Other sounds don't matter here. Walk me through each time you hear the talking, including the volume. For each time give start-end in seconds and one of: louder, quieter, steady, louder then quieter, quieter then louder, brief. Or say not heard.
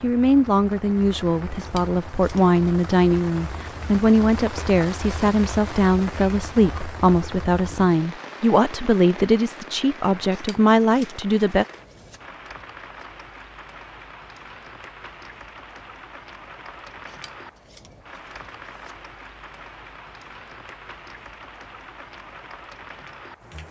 0.0-11.7 steady.